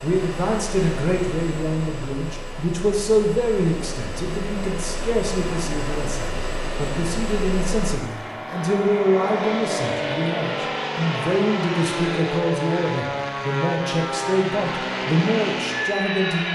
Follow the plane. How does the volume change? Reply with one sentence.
The volume of the plane goes up.